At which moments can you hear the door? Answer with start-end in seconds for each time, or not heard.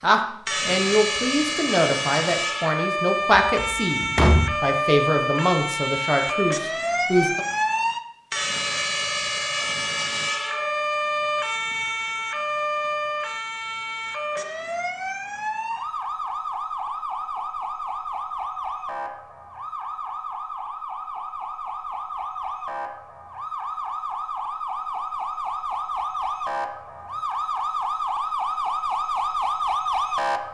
3.4-4.6.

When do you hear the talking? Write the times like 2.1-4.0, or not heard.
0.0-7.5.